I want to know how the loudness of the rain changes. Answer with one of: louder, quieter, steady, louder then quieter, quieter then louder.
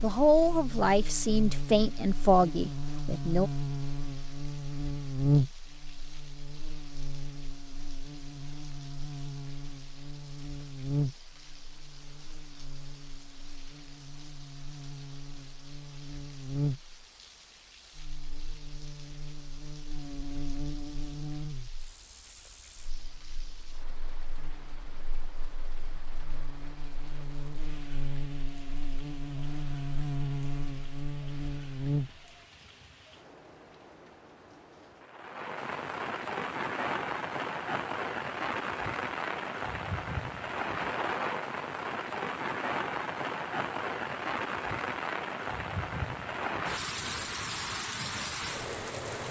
louder.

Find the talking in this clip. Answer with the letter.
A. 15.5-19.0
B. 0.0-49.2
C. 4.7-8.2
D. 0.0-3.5
D.